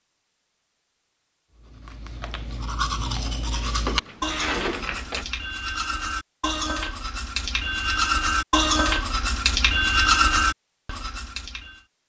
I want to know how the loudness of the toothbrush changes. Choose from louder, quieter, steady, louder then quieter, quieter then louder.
louder.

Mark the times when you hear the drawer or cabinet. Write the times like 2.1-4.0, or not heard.
3.9-5.3.